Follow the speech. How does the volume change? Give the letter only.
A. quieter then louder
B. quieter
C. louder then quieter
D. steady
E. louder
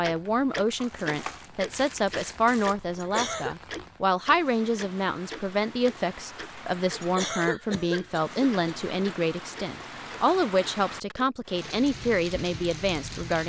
D.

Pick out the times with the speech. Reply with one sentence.
You can hear the speech from 0.0 to 13.4 s.